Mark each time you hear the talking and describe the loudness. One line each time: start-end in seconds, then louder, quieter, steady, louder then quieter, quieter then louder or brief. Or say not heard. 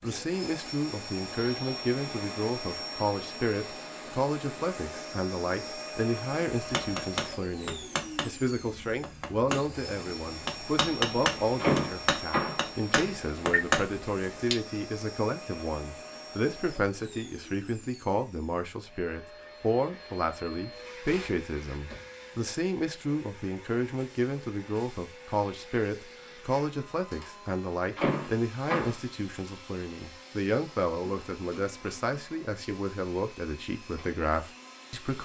0.0-35.1 steady.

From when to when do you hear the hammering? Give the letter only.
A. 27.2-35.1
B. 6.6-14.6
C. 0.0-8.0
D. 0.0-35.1
B.